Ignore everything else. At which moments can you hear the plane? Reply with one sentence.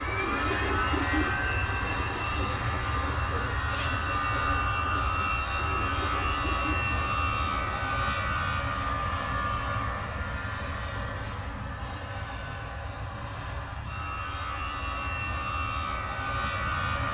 You can hear the plane from 0.0 to 17.0 s.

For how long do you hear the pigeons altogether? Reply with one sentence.
The pigeons can be heard for 8 seconds in total.